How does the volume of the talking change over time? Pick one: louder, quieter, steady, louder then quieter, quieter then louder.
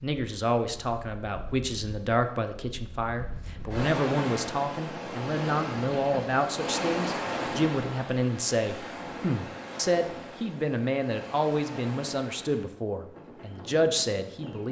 steady.